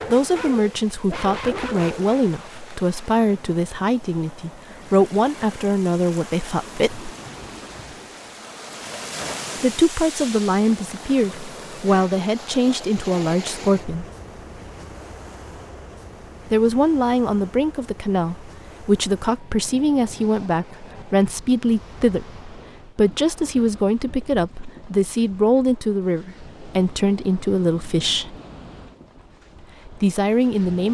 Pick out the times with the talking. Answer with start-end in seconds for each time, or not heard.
0.1-7.1, 9.6-14.1, 16.5-28.4, 29.9-30.8.